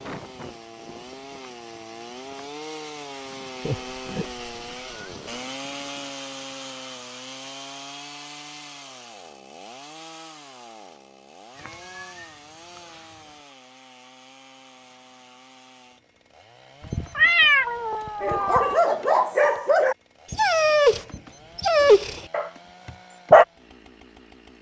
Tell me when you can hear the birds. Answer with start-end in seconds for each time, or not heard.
not heard.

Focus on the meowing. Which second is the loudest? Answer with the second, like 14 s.
17 s.